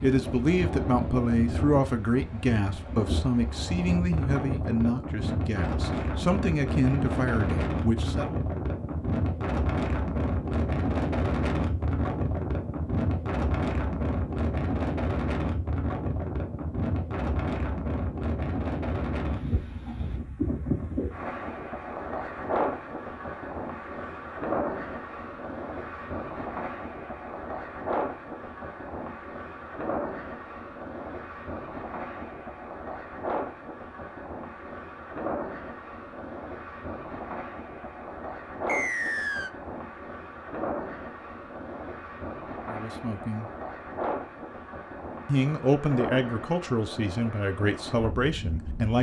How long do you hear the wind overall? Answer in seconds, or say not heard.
49 s.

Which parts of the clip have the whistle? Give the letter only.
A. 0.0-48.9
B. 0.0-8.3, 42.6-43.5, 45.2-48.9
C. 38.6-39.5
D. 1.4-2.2
C.